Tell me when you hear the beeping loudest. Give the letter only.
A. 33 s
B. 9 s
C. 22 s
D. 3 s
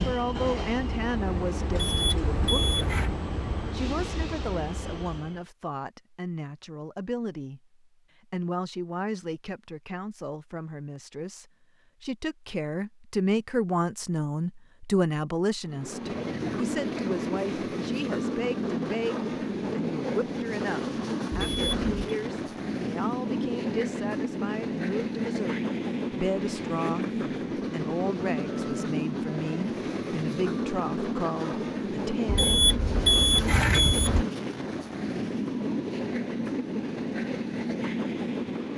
A.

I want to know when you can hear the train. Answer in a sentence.
The train can be heard from 0.0 to 5.5 s and from 15.7 to 38.7 s.